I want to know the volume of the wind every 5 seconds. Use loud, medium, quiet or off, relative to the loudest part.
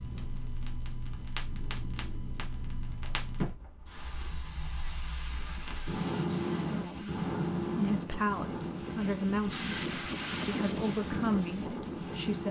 quiet, medium, loud.